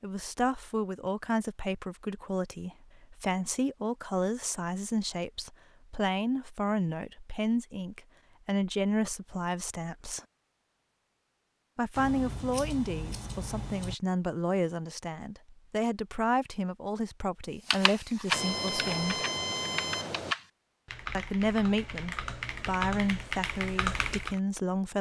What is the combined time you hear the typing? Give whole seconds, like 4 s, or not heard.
7 s.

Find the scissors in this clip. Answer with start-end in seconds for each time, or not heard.
11.9-13.9.